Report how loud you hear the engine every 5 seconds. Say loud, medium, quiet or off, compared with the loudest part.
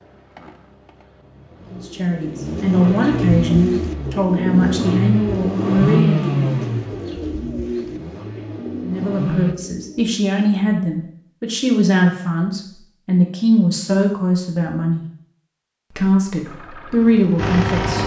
medium, loud, off, loud.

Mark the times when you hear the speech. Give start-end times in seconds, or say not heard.
1.7-6.2, 8.8-15.1, 15.9-18.0.